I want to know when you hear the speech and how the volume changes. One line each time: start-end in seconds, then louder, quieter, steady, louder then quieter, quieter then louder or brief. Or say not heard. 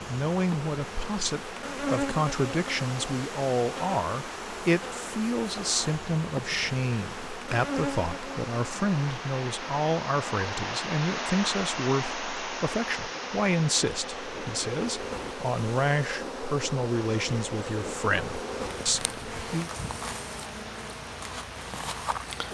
0.1-19.7 steady.